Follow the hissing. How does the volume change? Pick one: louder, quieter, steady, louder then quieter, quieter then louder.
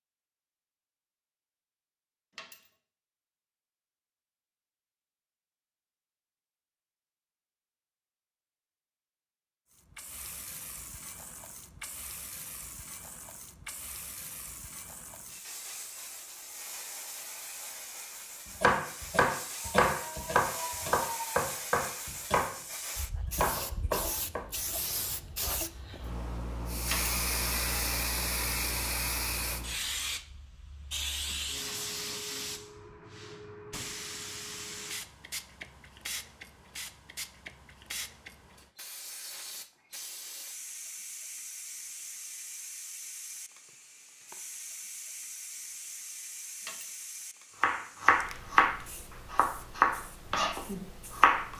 louder then quieter.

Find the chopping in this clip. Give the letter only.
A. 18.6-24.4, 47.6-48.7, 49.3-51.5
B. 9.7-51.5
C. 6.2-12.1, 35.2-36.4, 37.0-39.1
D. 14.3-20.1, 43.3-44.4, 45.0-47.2
A.